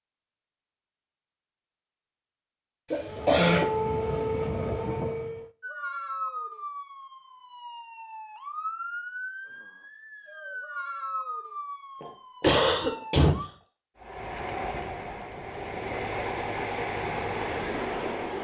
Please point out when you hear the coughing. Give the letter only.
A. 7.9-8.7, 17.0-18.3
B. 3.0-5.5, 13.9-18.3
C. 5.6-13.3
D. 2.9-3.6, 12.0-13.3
D.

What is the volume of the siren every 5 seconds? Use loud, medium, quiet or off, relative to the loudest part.
off, loud, loud, off.